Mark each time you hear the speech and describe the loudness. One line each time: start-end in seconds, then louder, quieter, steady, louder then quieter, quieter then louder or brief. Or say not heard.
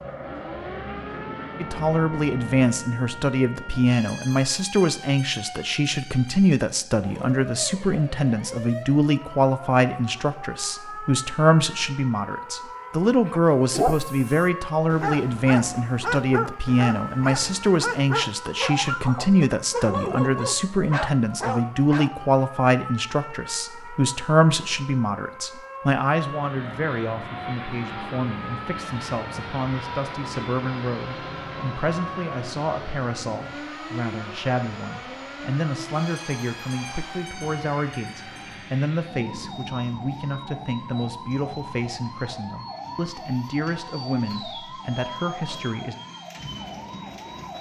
1.6-46.0 quieter.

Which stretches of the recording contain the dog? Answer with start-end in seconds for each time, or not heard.
13.2-22.1.